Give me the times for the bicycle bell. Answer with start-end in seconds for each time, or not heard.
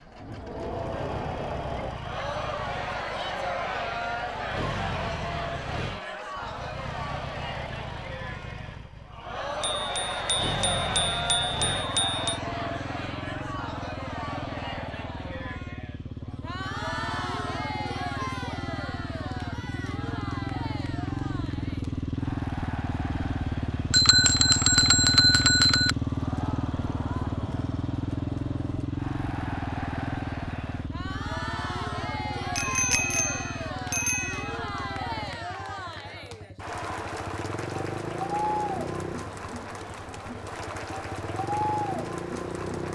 9.6-12.4, 23.9-25.9, 32.5-34.5.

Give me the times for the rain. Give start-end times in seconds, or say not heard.
not heard.